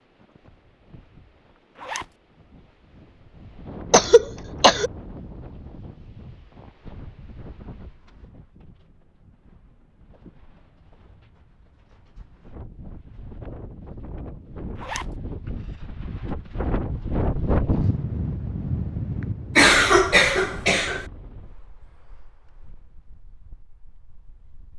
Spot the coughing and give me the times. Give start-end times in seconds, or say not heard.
3.9-4.9, 19.6-21.1.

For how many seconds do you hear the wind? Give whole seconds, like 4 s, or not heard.
25 s.